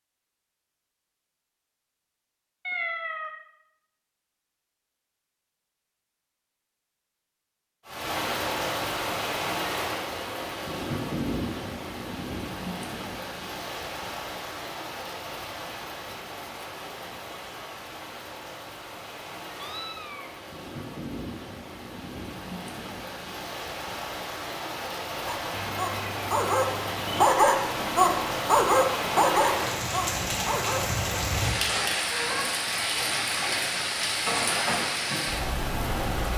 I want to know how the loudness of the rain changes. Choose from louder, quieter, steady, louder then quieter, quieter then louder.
quieter then louder.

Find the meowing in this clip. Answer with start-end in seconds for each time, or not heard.
2.6-3.3, 19.5-20.3, 25.5-27.2.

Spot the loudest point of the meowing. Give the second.
3 s.